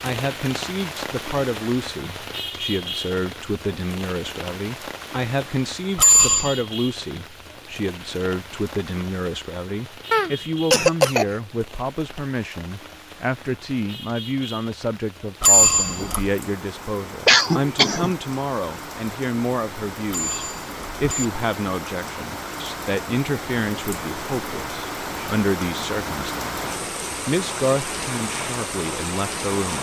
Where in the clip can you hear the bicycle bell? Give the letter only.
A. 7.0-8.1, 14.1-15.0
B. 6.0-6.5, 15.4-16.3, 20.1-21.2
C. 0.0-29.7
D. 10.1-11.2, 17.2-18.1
B.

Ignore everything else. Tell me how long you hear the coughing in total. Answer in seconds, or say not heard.
2 s.